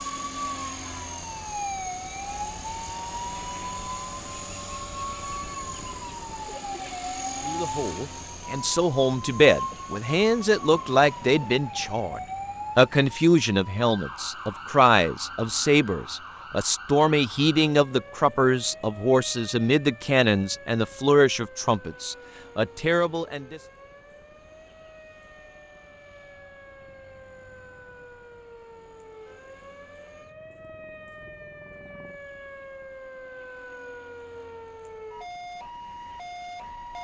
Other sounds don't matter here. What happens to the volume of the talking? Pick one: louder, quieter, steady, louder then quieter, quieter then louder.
steady.